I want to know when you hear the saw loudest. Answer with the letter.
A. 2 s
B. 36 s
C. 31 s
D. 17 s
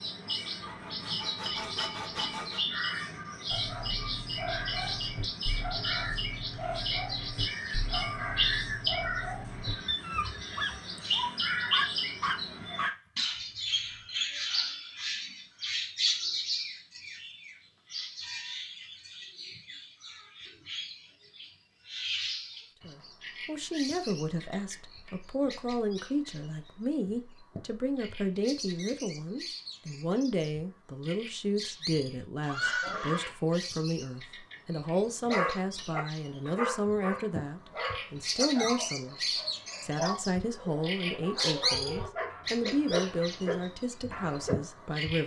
A.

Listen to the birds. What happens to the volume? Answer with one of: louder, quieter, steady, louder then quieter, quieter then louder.
quieter then louder.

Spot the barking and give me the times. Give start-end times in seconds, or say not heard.
3.5-12.9, 35.2-44.5.